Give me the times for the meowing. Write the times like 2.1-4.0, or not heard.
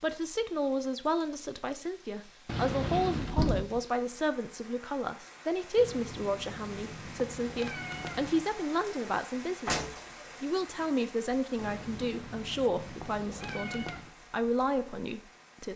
2.5-3.4, 5.8-8.4, 11.6-14.1.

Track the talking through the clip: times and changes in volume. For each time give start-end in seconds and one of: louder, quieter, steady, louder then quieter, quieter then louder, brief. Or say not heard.
0.0-15.7 steady.